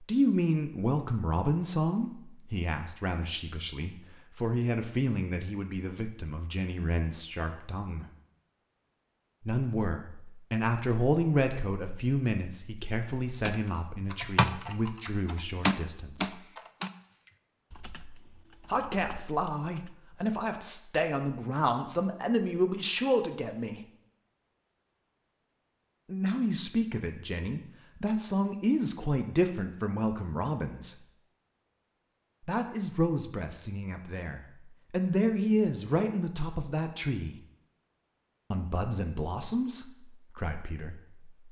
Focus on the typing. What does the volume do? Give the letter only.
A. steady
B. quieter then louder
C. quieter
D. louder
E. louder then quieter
C.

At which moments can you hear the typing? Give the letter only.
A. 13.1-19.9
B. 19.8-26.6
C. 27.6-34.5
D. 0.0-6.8
A.